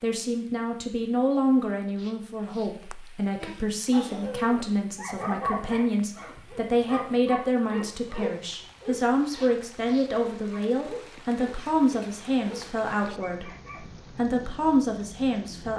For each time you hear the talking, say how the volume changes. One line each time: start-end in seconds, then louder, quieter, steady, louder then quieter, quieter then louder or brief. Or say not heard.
0.0-13.5 steady
14.2-15.7 brief.